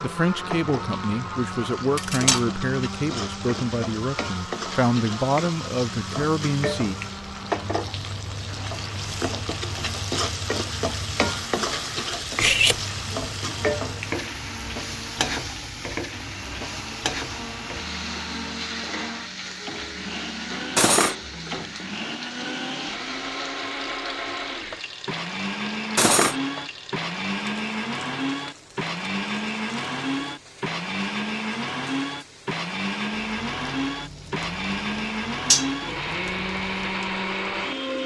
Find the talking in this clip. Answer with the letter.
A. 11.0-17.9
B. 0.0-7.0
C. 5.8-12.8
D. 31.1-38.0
B.